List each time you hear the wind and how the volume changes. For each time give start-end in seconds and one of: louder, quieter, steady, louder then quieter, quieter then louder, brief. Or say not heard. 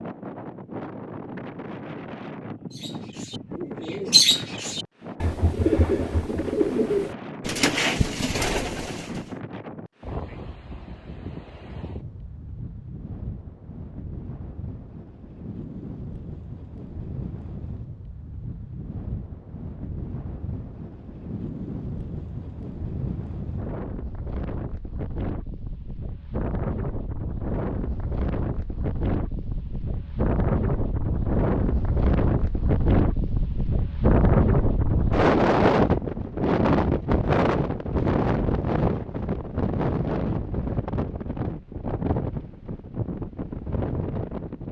0.0-44.6 louder.